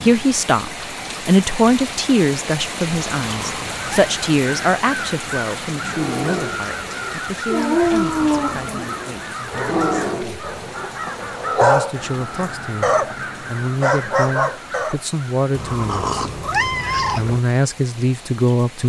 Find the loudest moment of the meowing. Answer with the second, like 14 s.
17 s.